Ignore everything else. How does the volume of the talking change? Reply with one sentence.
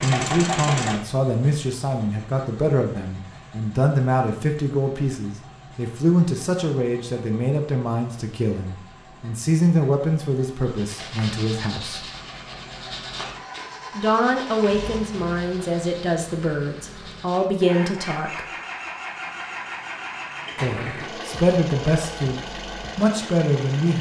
The volume of the talking stays about the same.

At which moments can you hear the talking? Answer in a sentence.
The talking can be heard from 0.0 to 12.1 s, from 13.9 to 18.4 s and from 20.6 to 23.9 s.